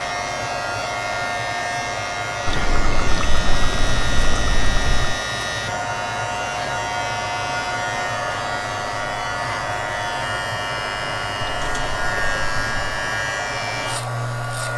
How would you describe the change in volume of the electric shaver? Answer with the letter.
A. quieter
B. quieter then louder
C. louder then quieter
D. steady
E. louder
D.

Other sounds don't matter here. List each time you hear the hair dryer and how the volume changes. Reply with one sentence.
The hair dryer can be heard from 0.0 to 14.7 s, at a steady volume.